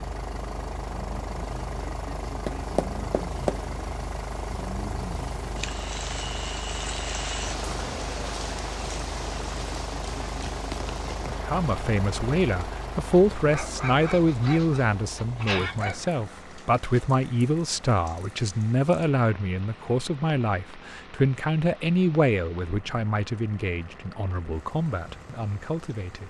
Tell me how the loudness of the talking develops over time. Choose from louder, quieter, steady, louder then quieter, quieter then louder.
quieter.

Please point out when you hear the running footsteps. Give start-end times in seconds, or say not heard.
2.2-3.6.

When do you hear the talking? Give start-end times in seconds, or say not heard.
11.3-26.2.